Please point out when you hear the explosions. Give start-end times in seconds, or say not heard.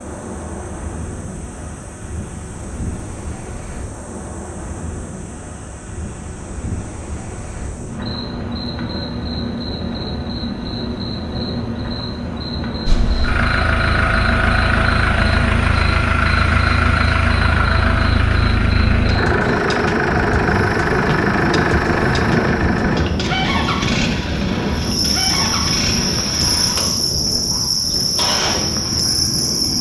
not heard.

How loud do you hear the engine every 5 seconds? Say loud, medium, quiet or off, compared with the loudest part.
off, off, loud, loud, loud, medium.